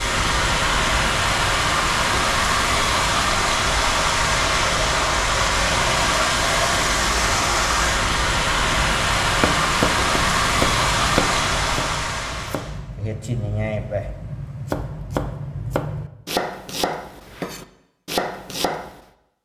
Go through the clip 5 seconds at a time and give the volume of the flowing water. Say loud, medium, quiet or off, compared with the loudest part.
loud, loud, loud, off.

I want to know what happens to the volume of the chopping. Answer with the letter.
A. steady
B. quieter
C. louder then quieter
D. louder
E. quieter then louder
E.